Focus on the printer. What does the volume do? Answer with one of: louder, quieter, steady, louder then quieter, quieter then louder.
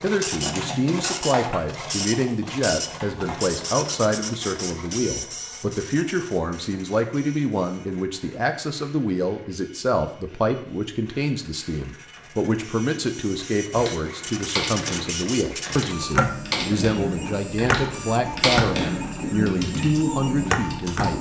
quieter then louder.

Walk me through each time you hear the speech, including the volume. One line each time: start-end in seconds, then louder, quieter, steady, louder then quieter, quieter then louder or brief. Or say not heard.
0.0-21.1 steady.